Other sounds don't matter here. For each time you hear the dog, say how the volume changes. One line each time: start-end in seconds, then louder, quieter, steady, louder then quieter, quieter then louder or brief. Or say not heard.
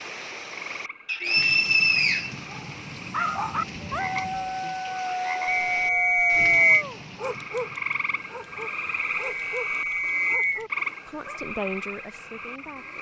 2.5-11.4 quieter.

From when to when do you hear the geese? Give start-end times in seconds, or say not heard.
not heard.